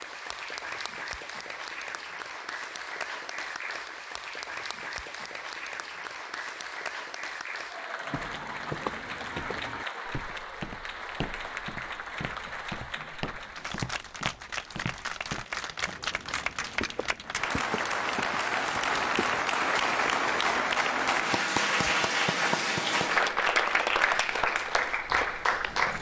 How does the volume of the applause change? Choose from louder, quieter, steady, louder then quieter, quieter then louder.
louder.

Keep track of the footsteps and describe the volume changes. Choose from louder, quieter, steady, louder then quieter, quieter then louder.
quieter.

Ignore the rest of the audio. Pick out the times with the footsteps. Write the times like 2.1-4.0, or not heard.
8.1-19.5.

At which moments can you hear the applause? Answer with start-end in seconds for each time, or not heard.
0.0-25.9.